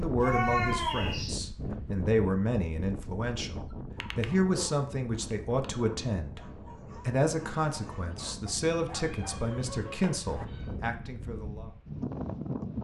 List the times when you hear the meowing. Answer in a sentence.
The meowing can be heard from 0.2 to 1.4 s and from 9.0 to 10.7 s.